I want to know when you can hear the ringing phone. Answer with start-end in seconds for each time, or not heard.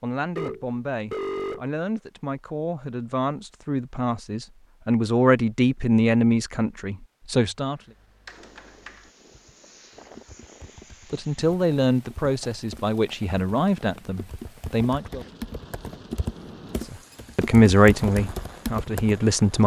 0.3-1.6.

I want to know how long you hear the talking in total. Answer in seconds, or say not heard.
15 s.